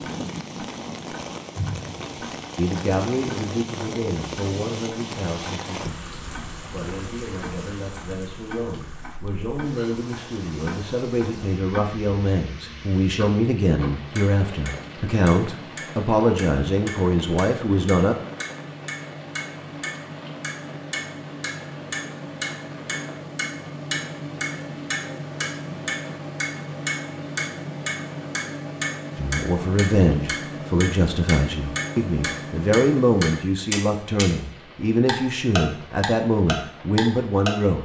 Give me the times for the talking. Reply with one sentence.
You can hear the talking from 2.5 to 18.1 s and from 29.1 to 37.8 s.